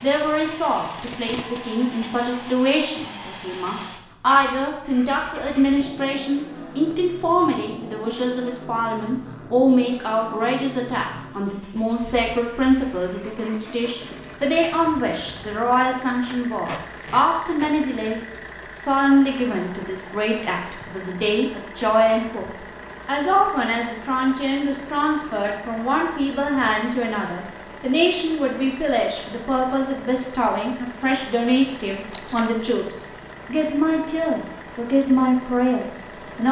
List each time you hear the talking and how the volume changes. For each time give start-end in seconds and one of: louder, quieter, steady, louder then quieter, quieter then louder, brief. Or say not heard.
0.0-36.4 steady.